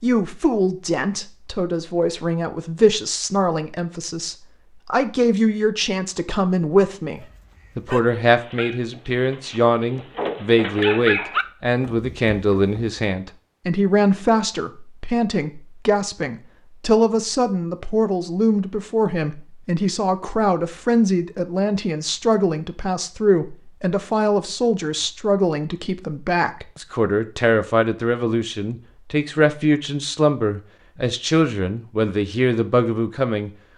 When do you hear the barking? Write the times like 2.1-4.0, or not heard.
7.2-12.8.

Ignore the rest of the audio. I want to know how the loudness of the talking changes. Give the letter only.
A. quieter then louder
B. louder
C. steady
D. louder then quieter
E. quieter
C.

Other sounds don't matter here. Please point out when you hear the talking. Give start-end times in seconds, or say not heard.
0.0-33.5.